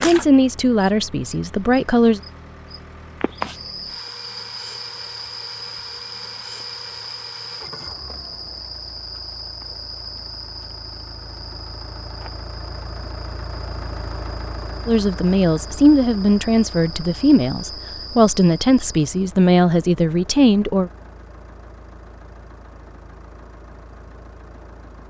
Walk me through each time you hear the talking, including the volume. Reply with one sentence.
The talking can be heard briefly from 0.0 to 2.2 s; and from 14.8 to 20.9 s, at a steady volume.